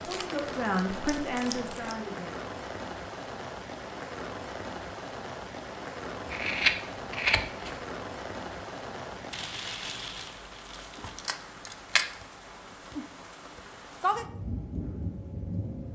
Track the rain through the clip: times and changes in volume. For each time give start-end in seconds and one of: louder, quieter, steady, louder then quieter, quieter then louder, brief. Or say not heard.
0.0-15.8 quieter then louder.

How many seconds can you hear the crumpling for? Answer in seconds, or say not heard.
4 s.